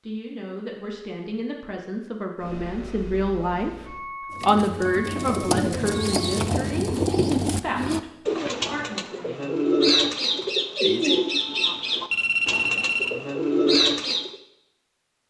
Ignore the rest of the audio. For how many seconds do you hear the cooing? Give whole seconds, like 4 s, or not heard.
10 s.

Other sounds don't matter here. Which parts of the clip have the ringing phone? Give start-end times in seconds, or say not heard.
12.1-13.2.